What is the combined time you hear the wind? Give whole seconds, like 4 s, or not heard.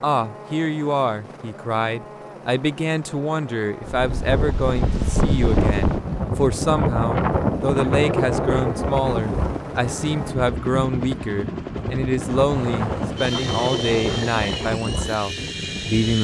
12 s.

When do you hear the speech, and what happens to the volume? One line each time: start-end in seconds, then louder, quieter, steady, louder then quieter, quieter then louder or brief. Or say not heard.
0.0-16.1 steady.